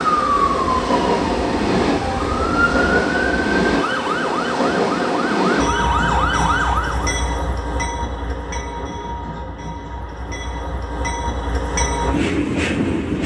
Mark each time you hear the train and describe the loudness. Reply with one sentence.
You can hear the train from 0.0 to 13.2 s, getting quieter then louder.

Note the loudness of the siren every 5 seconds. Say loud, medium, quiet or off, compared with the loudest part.
loud, loud, off.